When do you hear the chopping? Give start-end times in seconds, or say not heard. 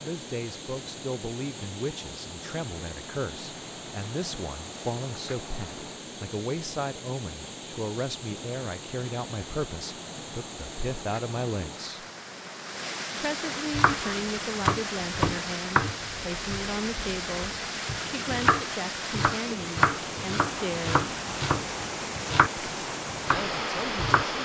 13.7-24.2.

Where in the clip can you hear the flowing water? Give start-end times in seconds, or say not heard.
0.0-24.4.